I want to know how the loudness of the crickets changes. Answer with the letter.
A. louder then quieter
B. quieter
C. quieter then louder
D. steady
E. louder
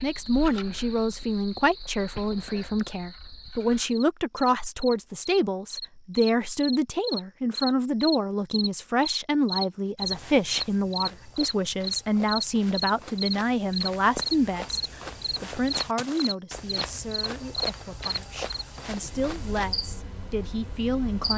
A.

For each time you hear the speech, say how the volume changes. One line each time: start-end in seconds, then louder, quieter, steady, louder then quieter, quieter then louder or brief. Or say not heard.
0.0-21.3 quieter.